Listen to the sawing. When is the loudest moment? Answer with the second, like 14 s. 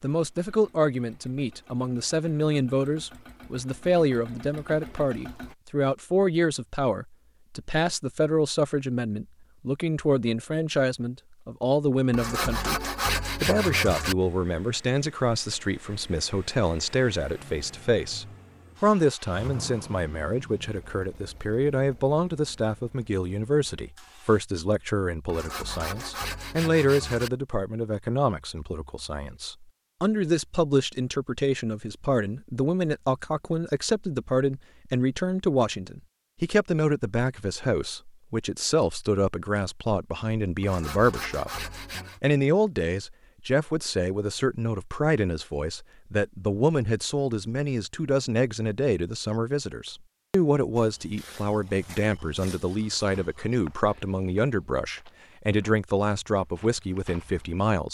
13 s.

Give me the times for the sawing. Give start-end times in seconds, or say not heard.
12.1-14.2, 25.2-27.3, 40.6-42.2.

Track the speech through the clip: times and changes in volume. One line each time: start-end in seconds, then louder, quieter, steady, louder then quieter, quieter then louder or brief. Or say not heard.
0.0-57.8 steady.